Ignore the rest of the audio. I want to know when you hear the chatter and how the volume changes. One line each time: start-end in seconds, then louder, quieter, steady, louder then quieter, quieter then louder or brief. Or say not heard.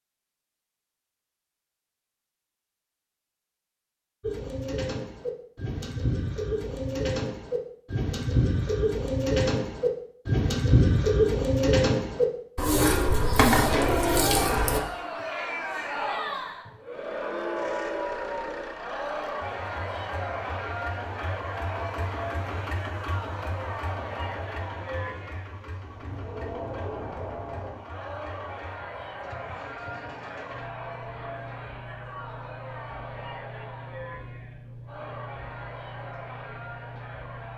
13.6-37.5 quieter.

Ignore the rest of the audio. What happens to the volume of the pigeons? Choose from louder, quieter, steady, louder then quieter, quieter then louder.
louder.